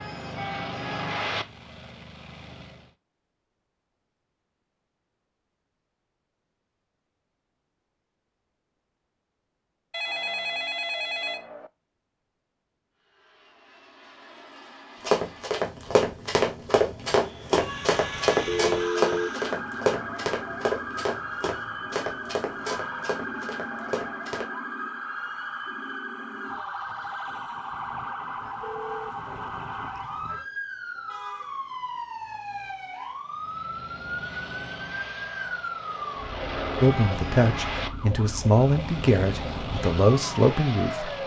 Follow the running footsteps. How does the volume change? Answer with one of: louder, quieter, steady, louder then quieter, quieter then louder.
quieter.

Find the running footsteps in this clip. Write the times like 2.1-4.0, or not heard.
15.0-24.4.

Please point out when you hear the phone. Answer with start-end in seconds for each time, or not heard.
9.9-11.7, 18.4-19.3, 28.6-29.1.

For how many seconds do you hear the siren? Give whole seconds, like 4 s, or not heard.
24 s.